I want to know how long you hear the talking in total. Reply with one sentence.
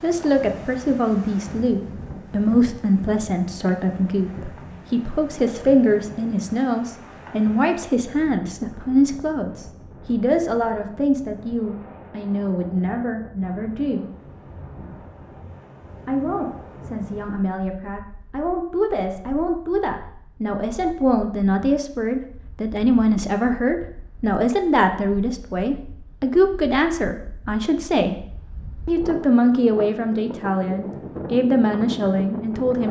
You can hear the talking for 30 seconds altogether.